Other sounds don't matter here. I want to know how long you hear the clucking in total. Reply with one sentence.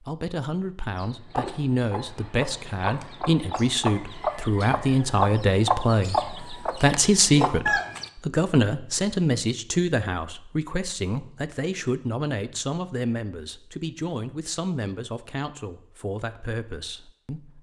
You can hear the clucking for 7 seconds altogether.